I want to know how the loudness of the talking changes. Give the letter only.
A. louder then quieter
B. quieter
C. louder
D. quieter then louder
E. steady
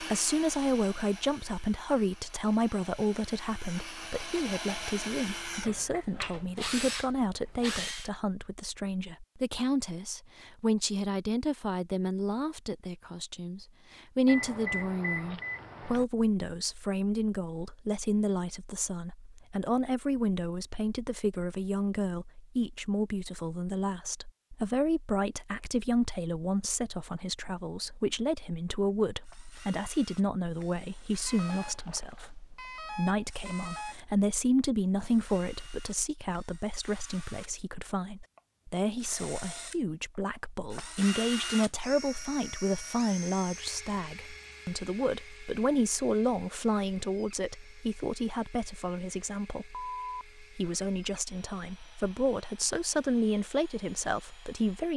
E.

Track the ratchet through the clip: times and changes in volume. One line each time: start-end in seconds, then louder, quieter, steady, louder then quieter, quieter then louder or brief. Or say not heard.
not heard.